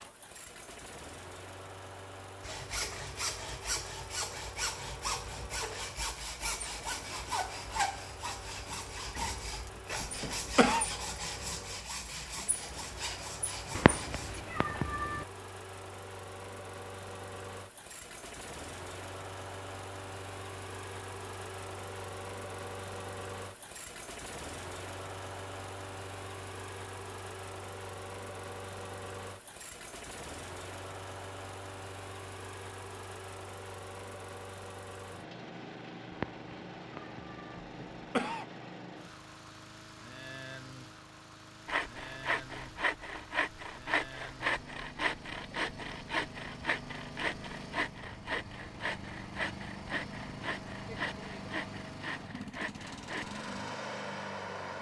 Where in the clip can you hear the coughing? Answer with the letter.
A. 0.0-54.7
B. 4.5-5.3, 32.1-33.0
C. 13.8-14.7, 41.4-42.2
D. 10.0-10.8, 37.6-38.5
D.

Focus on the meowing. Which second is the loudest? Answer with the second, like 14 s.
14 s.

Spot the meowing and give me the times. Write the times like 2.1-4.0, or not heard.
13.8-15.2, 36.1-37.6.